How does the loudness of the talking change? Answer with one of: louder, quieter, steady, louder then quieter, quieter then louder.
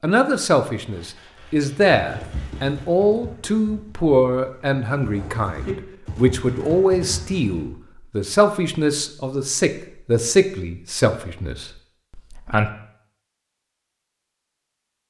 steady.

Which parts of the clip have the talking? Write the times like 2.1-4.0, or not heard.
0.0-12.7.